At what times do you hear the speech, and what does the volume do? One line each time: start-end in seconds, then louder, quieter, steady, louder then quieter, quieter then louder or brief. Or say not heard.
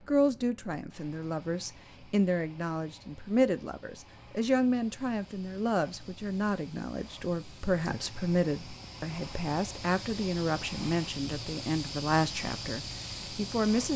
0.1-13.9 steady.